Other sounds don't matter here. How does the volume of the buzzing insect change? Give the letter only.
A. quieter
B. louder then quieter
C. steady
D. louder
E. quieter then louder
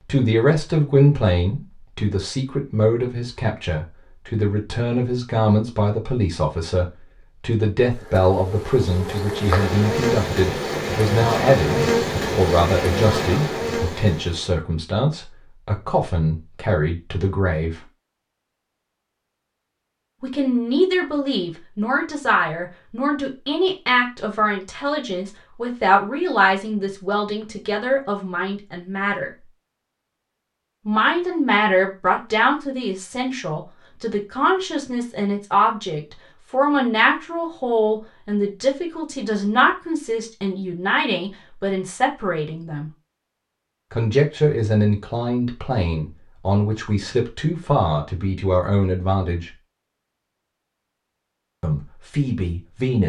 D.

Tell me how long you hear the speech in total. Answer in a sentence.
The speech can be heard for 46 seconds in total.